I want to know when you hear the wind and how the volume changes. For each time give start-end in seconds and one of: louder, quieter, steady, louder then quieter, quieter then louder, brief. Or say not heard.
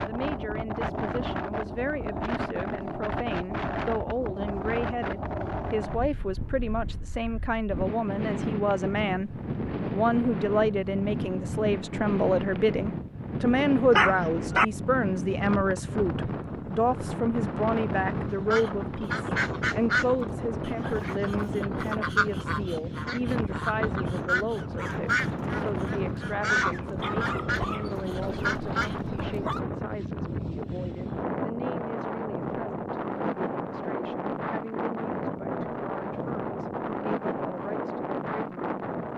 0.0-39.1 steady.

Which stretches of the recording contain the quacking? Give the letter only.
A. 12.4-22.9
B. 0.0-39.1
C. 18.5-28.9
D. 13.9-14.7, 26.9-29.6
C.